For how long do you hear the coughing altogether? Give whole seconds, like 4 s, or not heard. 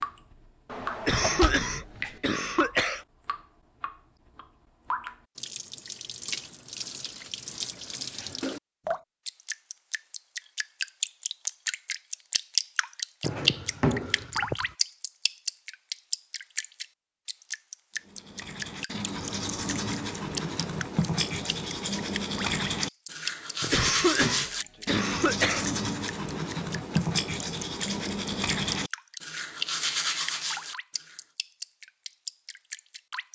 4 s.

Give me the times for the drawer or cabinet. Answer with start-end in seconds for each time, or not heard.
0.7-2.1, 13.2-14.7, 23.6-24.4.